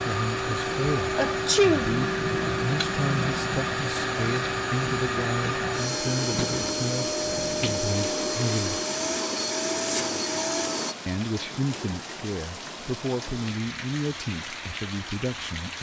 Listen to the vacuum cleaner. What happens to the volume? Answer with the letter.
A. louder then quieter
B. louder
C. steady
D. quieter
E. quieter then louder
C.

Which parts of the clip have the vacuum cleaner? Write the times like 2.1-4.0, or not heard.
0.0-10.9.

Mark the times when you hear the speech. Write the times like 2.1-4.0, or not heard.
0.0-8.8, 11.1-15.7.